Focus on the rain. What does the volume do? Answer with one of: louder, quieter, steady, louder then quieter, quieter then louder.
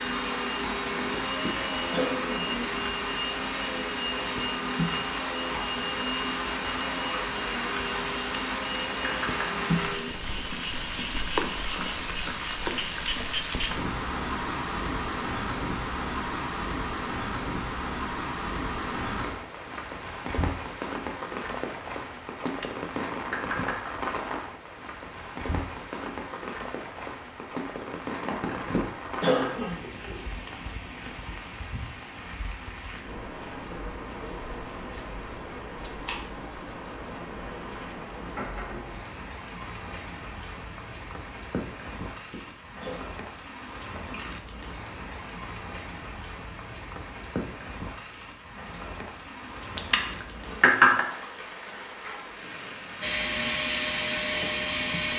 quieter.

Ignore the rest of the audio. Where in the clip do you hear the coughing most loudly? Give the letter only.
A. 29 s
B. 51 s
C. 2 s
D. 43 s
A.